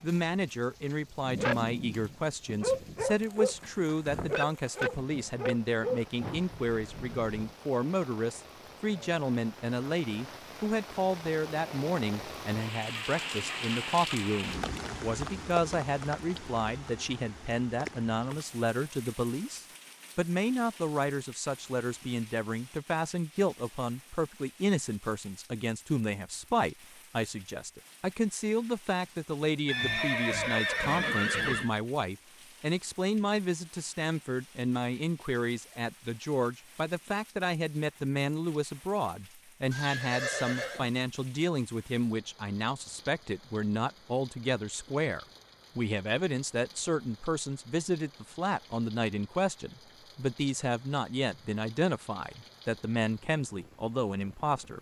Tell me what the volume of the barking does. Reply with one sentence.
The volume of the barking goes down.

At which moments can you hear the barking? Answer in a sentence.
The barking can be heard from 1.2 to 7.5 s.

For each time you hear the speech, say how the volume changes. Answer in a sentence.
You can hear the speech from 0.0 to 54.7 s, at a steady volume.